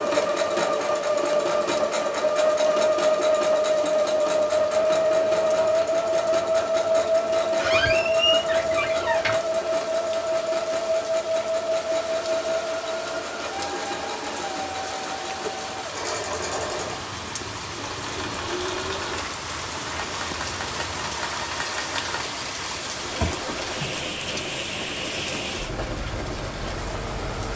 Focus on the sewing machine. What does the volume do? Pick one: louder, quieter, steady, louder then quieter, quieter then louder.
quieter.